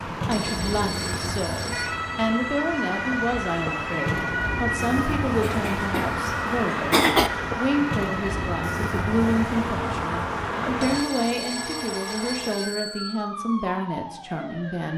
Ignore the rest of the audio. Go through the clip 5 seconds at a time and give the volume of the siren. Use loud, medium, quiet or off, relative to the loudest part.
loud, loud, medium.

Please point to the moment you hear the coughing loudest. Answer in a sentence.
The volume of the coughing peaks at 7 seconds.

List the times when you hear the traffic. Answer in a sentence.
You can hear the traffic from 0.0 to 11.1 s.